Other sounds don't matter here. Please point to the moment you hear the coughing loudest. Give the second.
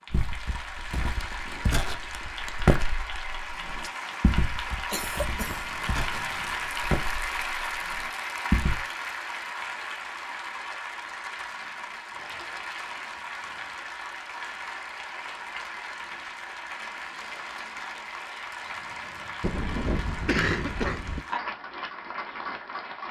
20 s.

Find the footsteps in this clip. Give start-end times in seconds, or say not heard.
0.1-8.8.